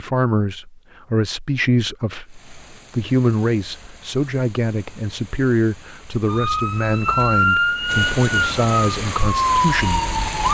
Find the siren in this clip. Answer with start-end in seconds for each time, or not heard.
6.2-10.5.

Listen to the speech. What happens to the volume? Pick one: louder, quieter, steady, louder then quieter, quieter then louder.
steady.